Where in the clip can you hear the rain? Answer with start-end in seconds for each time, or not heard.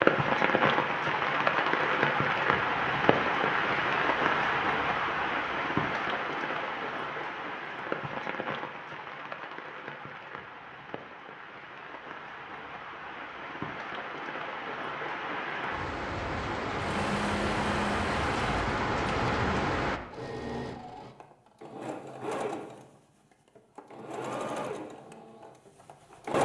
0.0-20.0.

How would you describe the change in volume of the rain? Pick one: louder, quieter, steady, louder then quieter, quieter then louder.
quieter then louder.